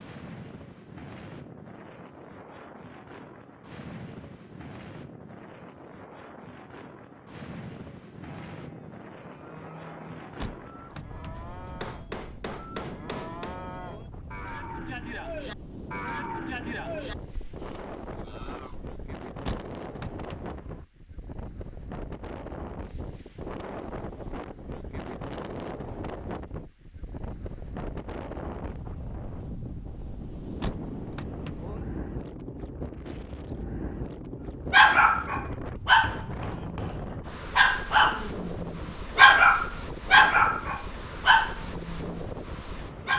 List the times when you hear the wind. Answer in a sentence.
You can hear the wind from 0.0 to 43.1 s.